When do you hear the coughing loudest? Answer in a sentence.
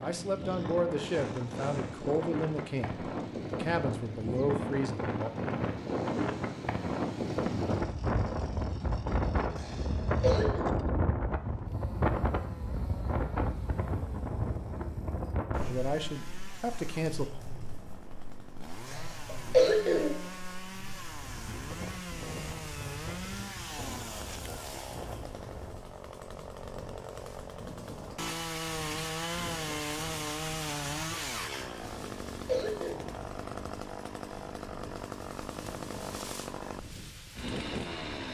The loudest moment of the coughing is at 20 seconds.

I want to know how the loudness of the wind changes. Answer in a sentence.
The volume of the wind goes down.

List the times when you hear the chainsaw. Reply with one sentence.
You can hear the chainsaw from 0.0 to 38.2 s.